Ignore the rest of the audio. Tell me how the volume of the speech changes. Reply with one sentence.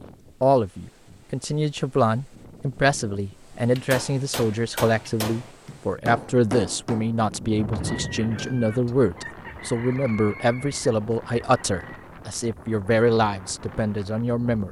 The volume of the speech stays about the same.